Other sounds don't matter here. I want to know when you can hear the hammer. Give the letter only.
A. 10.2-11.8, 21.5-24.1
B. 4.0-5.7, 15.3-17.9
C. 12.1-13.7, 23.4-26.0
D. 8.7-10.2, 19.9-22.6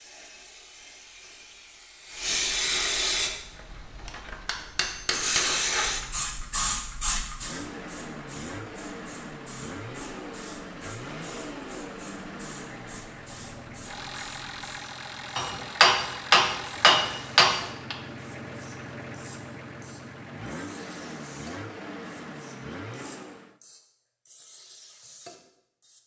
B.